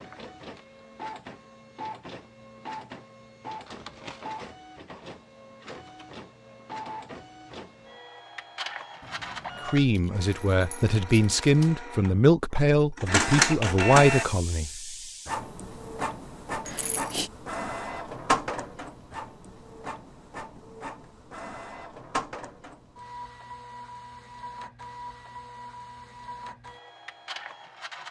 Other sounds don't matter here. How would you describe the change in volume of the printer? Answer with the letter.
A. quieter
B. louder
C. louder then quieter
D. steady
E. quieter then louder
C.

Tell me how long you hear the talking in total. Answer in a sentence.
The talking can be heard for 5 seconds in total.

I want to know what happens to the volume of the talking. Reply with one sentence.
The loudness of the talking goes up.